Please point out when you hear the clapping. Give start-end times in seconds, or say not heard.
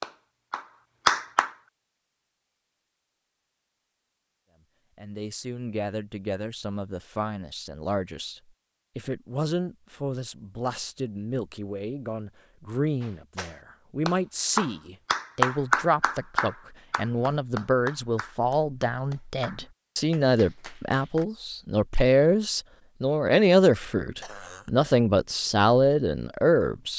0.0-1.6, 13.0-21.2.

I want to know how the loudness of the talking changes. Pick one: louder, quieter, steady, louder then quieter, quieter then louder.
louder.